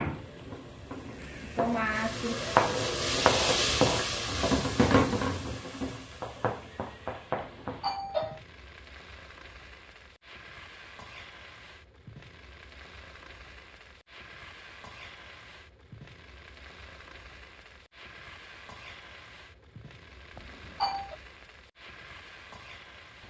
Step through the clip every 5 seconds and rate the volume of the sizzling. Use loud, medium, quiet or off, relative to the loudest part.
loud, medium, quiet, quiet, quiet.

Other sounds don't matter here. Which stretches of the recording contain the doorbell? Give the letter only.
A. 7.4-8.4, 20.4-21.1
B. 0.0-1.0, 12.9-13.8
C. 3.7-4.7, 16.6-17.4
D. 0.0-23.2
A.